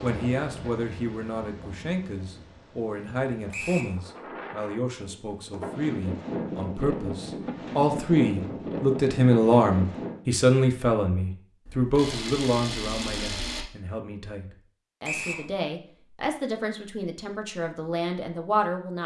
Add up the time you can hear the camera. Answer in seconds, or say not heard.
2 s.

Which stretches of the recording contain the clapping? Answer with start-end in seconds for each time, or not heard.
not heard.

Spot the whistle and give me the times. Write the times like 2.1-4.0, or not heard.
3.5-4.0, 15.0-15.4.